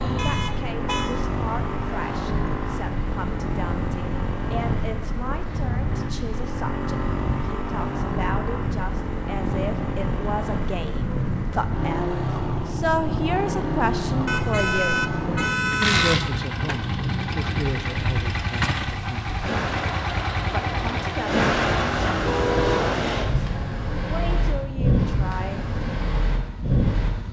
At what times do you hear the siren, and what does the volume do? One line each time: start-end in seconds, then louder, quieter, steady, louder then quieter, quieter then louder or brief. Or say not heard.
not heard.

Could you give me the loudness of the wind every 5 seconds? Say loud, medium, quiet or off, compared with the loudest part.
medium, medium, medium, medium, loud, loud.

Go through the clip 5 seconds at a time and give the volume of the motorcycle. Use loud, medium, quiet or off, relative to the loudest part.
loud, loud, loud, loud, loud, medium.